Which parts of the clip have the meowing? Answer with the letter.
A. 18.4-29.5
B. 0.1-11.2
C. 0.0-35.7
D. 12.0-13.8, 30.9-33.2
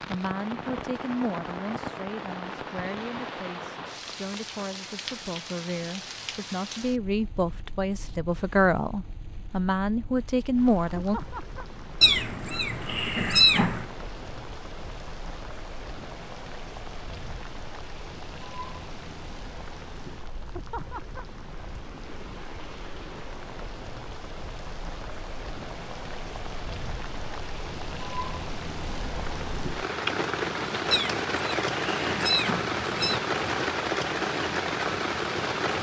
D.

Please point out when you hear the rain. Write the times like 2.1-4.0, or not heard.
0.0-35.7.